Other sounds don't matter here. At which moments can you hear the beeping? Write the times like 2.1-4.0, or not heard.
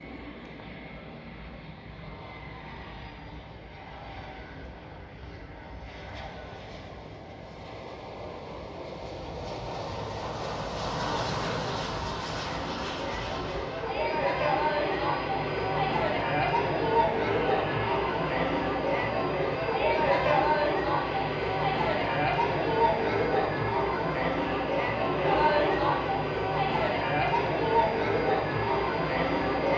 not heard.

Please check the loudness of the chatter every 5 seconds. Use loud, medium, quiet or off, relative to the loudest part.
off, off, medium, loud, loud, loud.